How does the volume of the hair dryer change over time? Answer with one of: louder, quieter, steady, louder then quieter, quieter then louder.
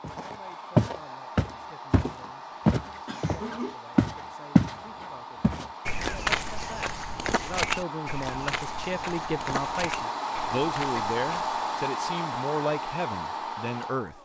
louder.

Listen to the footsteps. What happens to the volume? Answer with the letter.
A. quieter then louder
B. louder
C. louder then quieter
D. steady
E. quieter
E.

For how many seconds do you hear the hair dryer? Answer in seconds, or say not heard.
14 s.